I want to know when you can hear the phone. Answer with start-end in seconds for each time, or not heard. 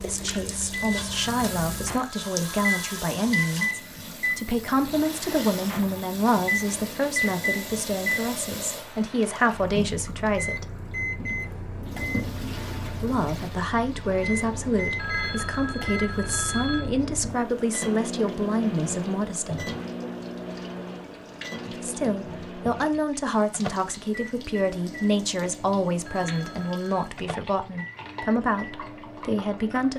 1.1-3.0, 14.9-16.9, 26.1-27.1.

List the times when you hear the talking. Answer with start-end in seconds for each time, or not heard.
0.0-10.7, 12.9-19.7, 21.8-29.9.